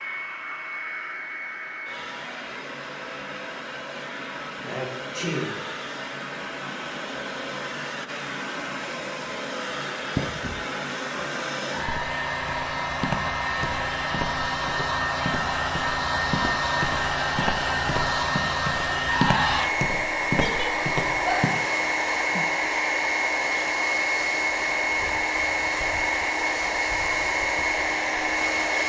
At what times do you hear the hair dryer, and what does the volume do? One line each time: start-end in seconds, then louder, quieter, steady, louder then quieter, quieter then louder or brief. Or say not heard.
0.0-28.8 louder.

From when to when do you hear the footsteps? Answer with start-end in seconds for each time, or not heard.
11.8-21.5.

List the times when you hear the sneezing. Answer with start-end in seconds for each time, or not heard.
4.6-5.6, 20.2-21.6.